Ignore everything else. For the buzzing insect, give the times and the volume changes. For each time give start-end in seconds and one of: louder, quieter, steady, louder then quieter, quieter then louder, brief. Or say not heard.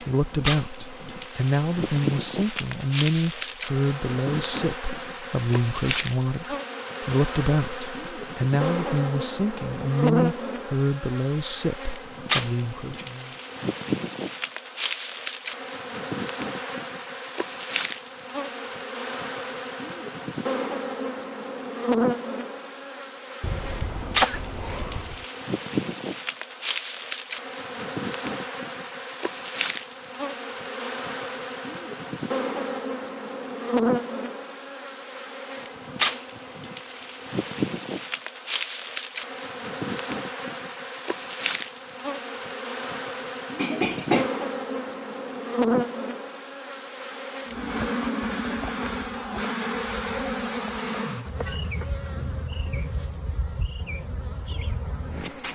0.0-55.4 steady.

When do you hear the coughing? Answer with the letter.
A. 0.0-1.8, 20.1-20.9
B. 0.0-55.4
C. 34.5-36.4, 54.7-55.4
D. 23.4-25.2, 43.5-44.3
D.